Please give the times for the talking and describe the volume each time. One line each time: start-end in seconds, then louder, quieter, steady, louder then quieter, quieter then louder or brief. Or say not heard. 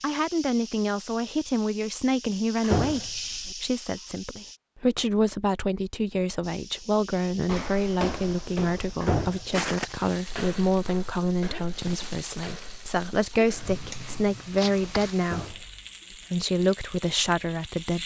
0.0-18.0 steady.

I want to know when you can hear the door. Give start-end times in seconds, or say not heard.
2.6-3.1, 9.0-9.4, 15.2-15.7.